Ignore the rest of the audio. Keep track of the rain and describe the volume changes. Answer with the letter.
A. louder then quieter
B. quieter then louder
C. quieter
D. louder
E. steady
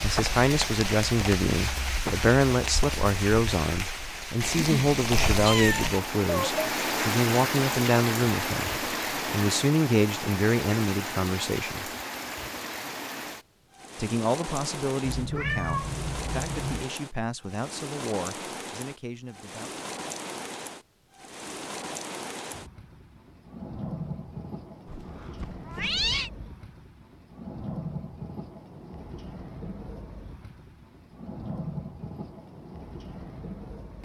C.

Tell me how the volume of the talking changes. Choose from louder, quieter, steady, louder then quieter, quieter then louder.
quieter.